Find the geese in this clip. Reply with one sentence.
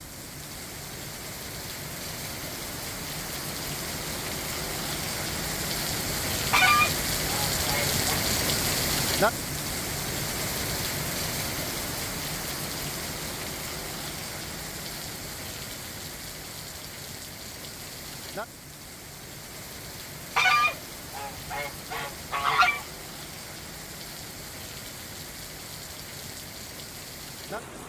You can hear the geese from 6.5 to 8.2 s and from 20.4 to 22.9 s.